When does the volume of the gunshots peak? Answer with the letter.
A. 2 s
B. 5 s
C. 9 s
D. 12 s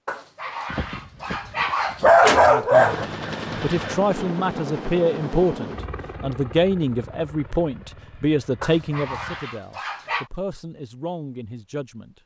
A.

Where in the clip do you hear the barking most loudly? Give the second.
2 s.